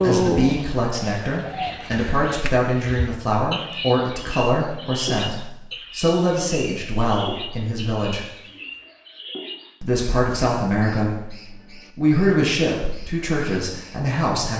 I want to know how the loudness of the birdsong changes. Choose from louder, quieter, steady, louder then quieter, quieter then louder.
quieter.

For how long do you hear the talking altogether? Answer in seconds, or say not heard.
12 s.